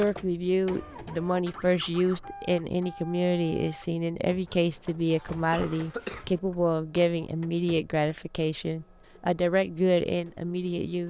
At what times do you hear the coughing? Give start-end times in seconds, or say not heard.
5.1-6.4.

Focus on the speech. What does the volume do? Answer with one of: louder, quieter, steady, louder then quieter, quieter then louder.
steady.